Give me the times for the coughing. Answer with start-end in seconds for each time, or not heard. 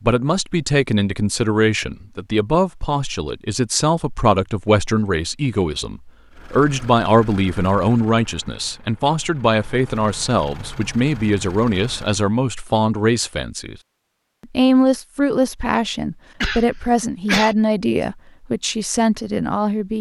16.4-17.6.